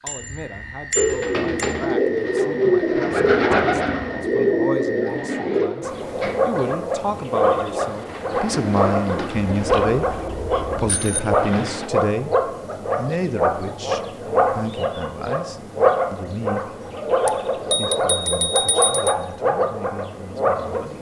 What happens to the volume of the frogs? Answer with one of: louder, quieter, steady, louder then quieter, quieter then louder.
louder.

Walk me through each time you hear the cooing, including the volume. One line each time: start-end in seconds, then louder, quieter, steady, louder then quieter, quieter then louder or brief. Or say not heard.
0.9-11.9 quieter.